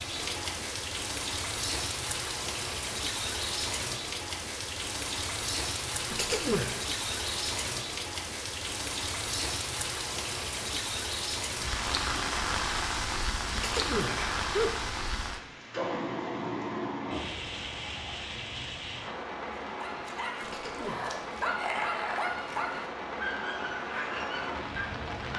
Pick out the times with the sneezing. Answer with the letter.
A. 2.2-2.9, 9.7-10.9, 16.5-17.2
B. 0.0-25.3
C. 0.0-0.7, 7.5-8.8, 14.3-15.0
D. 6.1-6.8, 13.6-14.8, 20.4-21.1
D.